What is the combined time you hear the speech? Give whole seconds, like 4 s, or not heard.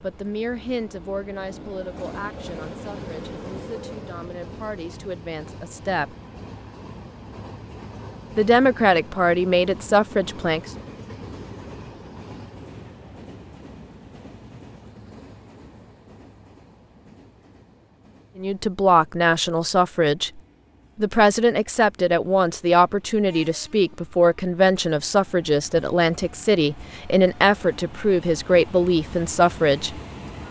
20 s.